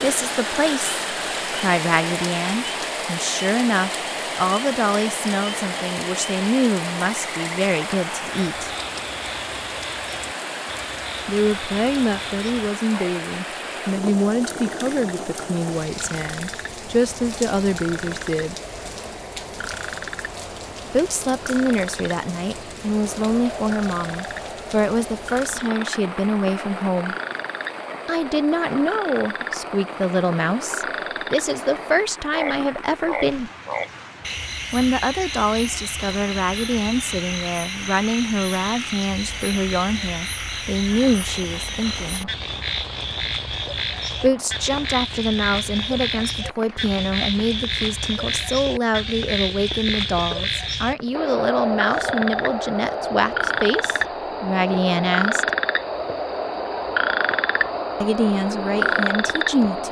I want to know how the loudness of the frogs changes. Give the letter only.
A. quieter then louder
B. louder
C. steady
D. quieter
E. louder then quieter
B.